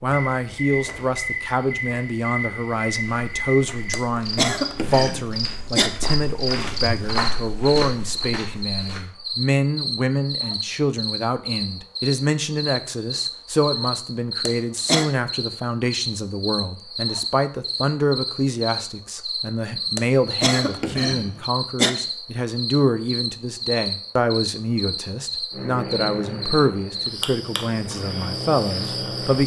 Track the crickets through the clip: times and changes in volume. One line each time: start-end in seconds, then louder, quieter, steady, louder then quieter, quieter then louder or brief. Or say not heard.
0.0-29.4 steady.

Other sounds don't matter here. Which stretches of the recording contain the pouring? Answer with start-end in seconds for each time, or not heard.
not heard.